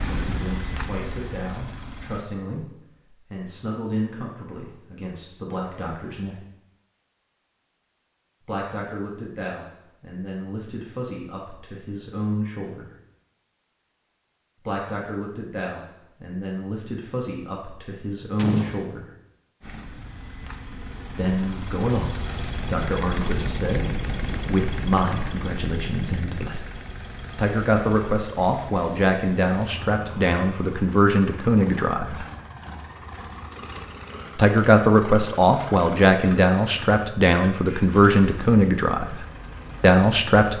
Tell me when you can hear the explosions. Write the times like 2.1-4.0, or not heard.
18.4-18.9.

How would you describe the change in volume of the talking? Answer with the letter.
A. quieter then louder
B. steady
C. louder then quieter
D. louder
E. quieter
D.